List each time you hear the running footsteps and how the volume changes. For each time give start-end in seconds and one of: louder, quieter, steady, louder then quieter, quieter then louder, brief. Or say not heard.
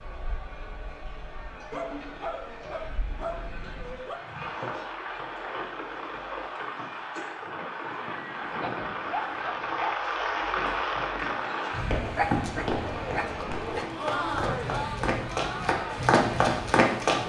11.9-17.2 quieter then louder.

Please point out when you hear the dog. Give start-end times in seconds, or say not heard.
1.7-4.2, 8.6-9.9, 12.2-13.8.